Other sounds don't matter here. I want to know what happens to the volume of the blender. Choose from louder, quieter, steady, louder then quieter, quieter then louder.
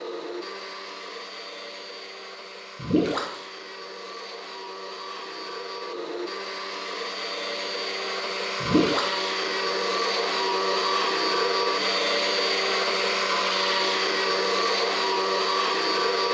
louder.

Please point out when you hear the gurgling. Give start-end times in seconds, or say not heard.
2.8-3.4, 8.6-9.2.